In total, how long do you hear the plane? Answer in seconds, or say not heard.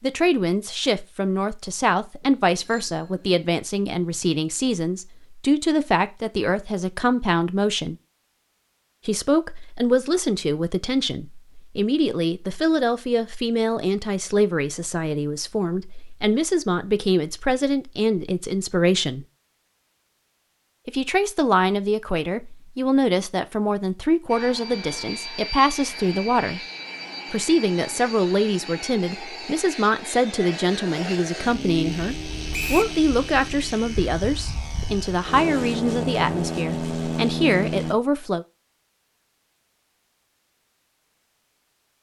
14 s.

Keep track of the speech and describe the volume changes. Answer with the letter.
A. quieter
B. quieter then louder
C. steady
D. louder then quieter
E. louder
C.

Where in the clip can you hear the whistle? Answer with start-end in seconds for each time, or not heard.
32.5-33.0.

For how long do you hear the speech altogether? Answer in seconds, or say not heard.
35 s.